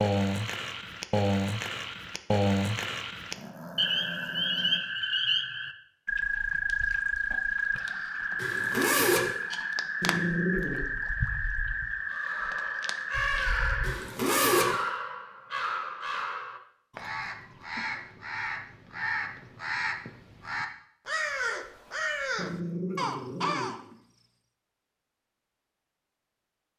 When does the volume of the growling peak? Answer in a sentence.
The volume of the growling peaks at 10 seconds.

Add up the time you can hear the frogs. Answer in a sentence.
You can hear the frogs for 14 seconds altogether.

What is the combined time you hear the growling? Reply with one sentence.
The growling can be heard for 4 seconds in total.